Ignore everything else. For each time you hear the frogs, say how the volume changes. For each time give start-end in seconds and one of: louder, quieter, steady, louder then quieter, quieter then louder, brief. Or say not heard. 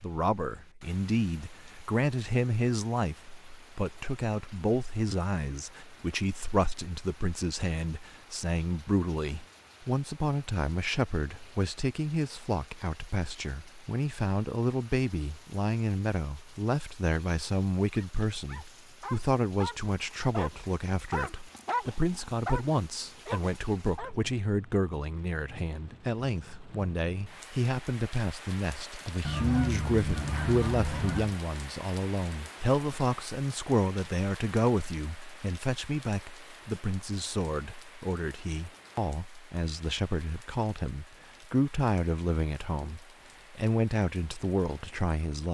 not heard.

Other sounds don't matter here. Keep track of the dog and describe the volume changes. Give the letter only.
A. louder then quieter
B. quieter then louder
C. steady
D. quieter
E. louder
A.